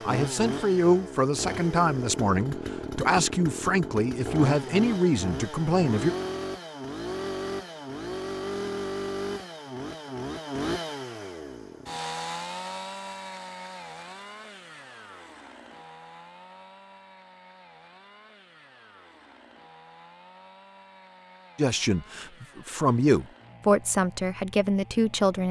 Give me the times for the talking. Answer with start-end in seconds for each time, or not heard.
0.1-6.2, 21.6-25.4.